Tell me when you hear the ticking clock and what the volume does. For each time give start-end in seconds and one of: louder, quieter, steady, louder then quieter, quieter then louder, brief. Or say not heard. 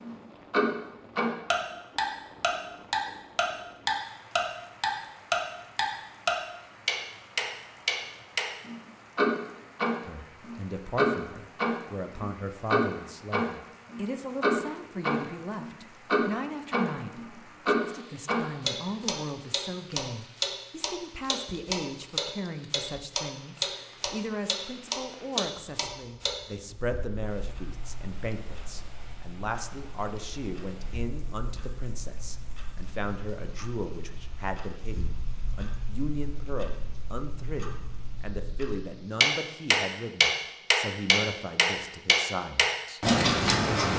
0.0-43.9 quieter then louder.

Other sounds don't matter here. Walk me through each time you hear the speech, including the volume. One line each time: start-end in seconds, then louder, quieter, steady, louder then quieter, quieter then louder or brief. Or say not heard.
10.1-43.9 steady.